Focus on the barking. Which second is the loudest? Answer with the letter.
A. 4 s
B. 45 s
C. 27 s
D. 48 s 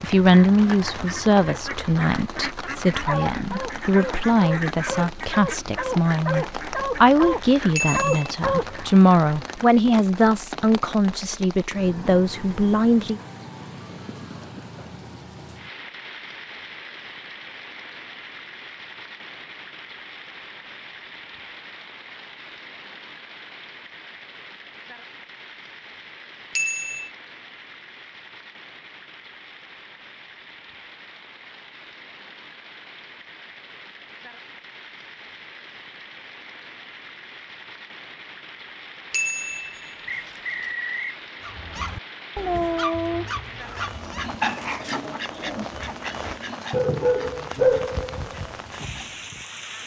D.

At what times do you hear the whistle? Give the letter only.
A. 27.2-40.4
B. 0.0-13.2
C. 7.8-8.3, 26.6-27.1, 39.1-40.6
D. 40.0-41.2
D.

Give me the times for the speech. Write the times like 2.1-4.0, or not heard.
0.0-13.2.